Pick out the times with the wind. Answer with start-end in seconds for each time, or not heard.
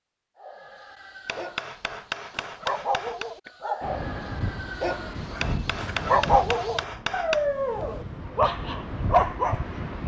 3.8-10.0.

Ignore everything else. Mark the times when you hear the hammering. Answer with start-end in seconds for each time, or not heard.
1.2-3.3, 5.4-7.5.